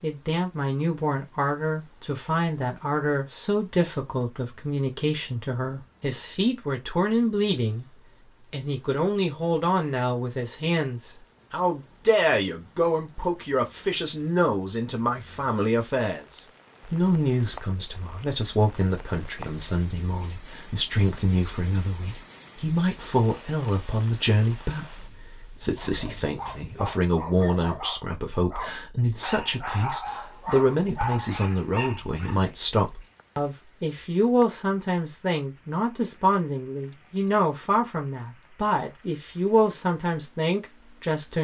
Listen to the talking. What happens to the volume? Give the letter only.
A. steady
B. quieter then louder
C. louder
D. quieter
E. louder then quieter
A.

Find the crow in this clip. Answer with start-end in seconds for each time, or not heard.
not heard.